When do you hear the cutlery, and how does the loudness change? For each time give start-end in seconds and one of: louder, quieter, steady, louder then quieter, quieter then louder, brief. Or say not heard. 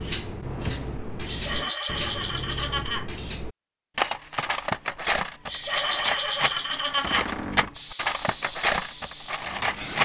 0.0-10.0 louder.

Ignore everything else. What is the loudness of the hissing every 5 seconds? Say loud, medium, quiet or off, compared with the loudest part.
off, loud.